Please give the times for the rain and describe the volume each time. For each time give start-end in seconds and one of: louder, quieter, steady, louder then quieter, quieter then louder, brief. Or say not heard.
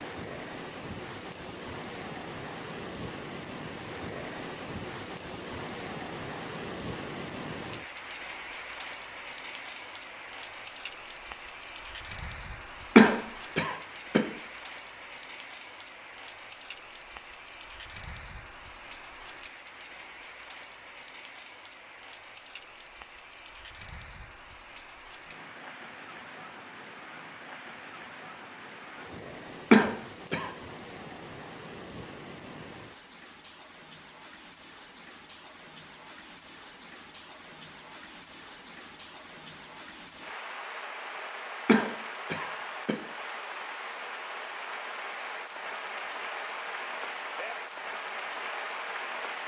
0.0-49.4 quieter then louder.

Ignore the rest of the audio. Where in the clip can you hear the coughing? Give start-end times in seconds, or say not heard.
12.9-14.2, 29.7-30.5, 41.6-43.0.